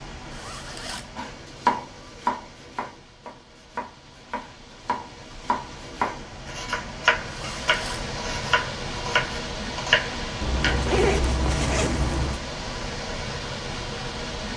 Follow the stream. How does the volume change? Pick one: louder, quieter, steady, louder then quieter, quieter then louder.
louder.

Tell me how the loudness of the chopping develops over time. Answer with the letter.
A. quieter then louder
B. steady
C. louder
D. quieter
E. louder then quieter
A.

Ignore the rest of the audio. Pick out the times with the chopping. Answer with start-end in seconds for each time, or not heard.
1.1-10.8.